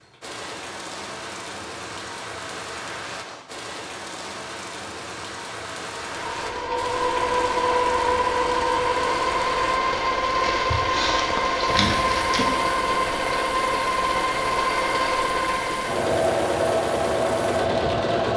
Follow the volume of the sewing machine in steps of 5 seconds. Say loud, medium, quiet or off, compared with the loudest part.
off, loud, loud, loud.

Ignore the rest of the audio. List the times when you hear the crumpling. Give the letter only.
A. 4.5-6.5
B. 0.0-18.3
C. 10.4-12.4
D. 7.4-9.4
C.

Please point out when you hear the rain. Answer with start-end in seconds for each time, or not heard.
0.0-18.3.